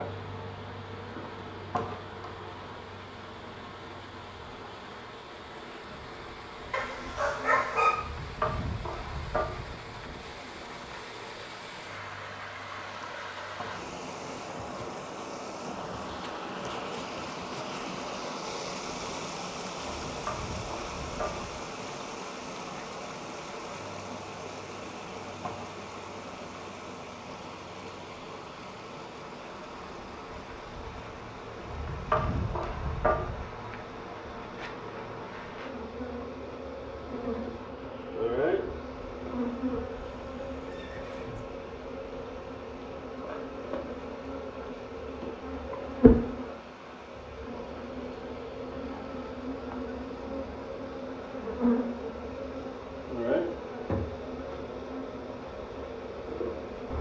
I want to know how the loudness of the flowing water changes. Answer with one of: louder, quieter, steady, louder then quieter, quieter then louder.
louder then quieter.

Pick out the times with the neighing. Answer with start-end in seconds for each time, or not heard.
40.0-41.5.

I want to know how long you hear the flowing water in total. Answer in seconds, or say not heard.
57 s.